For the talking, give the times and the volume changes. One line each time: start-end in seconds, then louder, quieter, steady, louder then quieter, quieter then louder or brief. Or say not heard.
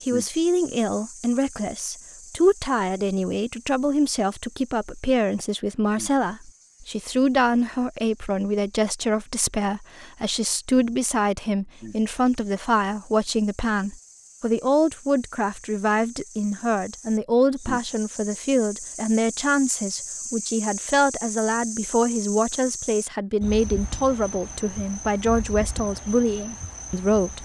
0.1-27.4 steady.